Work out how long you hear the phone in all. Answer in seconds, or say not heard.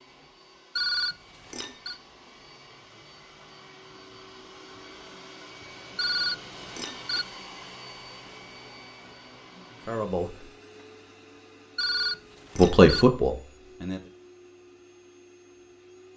4 s.